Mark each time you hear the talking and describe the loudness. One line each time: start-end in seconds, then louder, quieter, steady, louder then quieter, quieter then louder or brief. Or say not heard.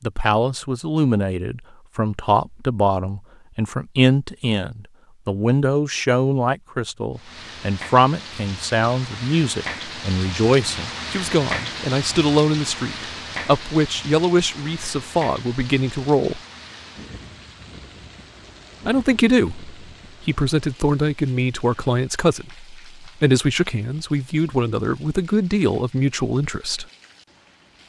0.0-16.4 steady
18.9-26.9 steady.